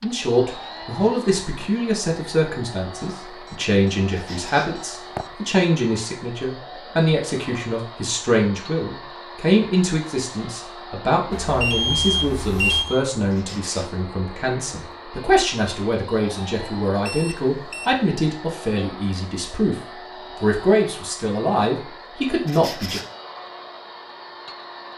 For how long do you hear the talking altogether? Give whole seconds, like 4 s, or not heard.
22 s.